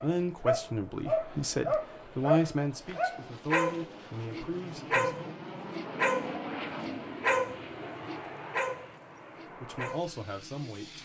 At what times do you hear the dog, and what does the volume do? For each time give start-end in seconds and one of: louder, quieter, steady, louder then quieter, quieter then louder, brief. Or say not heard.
0.0-10.7 quieter.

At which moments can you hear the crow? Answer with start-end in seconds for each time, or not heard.
not heard.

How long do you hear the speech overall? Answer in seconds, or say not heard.
7 s.